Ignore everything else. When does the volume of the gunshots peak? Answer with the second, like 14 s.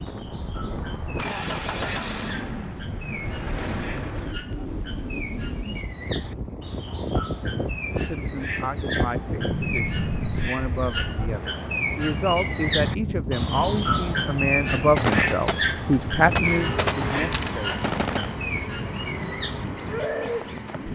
15 s.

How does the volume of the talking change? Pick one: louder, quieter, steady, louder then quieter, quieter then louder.
louder.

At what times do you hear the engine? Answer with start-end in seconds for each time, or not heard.
0.2-4.3, 16.4-20.9.